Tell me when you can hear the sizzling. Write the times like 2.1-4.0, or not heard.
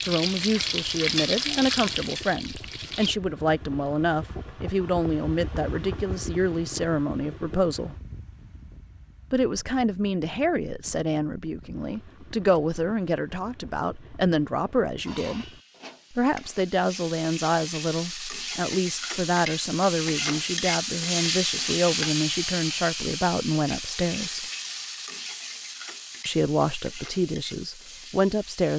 0.0-3.1, 15.1-28.7.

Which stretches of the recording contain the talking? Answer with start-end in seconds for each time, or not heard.
0.0-8.0, 9.3-15.5, 16.1-24.4, 26.2-28.7.